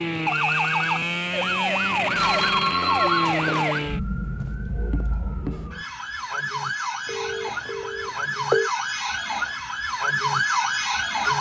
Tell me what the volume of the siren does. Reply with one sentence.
The volume of the siren goes down, then up.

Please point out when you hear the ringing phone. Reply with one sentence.
The ringing phone can be heard from 2.1 to 3.6 s and from 7.0 to 8.7 s.